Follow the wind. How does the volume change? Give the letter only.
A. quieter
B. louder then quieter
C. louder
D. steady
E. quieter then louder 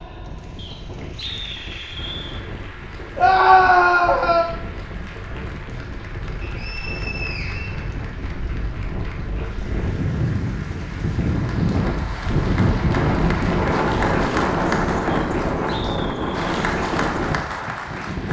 C.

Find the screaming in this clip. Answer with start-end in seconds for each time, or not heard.
3.1-4.5.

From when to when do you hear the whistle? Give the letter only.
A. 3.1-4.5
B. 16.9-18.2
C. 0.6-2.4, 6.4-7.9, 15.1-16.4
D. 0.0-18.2
C.